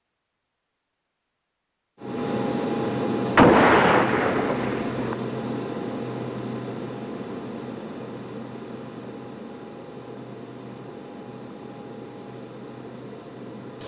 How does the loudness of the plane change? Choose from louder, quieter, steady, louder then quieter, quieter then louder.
quieter.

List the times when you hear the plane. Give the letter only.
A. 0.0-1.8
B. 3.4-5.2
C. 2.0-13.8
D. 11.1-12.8
C.